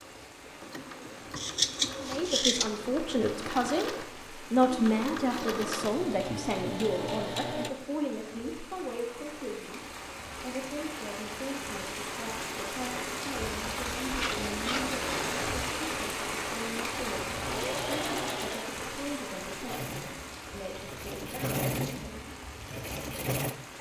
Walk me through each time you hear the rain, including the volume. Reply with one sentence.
The rain can be heard from 0.0 to 23.7 s, getting louder then quieter.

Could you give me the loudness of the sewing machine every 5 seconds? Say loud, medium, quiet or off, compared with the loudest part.
medium, loud, off, loud, loud.